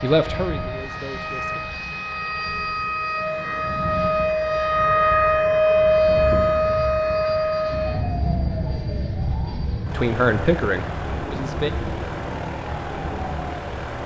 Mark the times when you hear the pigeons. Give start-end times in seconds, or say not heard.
not heard.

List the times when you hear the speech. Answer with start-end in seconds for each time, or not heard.
0.0-1.6, 9.9-11.7.